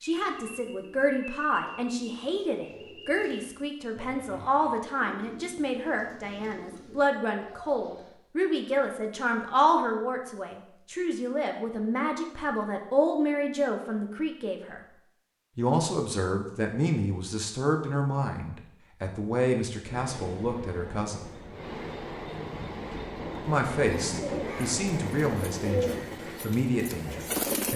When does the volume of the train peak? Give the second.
24 s.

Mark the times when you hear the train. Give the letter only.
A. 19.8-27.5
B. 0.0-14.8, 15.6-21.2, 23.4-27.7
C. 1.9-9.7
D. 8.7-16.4
A.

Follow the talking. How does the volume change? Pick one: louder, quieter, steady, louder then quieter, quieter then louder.
steady.